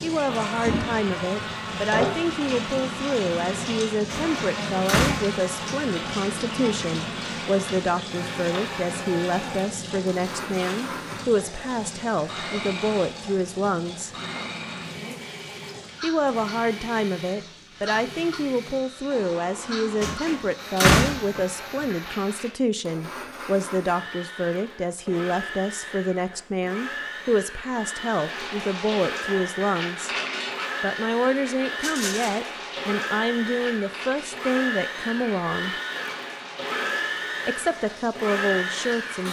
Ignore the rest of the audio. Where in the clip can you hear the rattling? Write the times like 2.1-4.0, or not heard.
31.8-32.4.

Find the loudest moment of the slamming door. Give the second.
21 s.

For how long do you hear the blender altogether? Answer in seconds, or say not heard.
39 s.